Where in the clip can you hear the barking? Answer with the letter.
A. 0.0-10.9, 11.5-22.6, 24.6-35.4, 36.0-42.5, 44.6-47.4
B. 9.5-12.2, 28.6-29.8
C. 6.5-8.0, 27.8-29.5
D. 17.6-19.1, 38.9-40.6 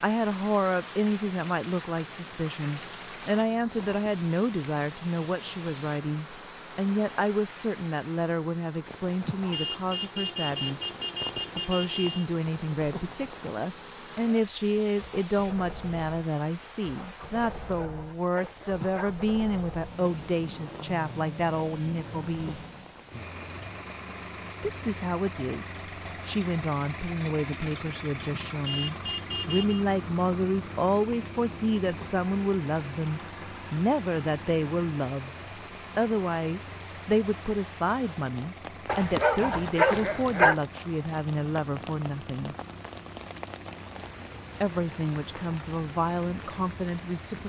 D.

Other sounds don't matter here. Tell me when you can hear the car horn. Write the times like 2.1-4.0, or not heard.
9.5-12.2, 28.6-29.8.